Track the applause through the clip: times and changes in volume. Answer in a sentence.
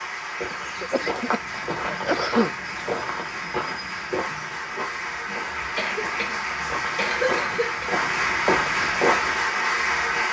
The applause can be heard from 0.0 to 10.2 s, getting louder.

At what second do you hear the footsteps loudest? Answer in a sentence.
The loudest moment of the footsteps is at 9 seconds.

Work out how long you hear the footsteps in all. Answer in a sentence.
The footsteps can be heard for 9 seconds in total.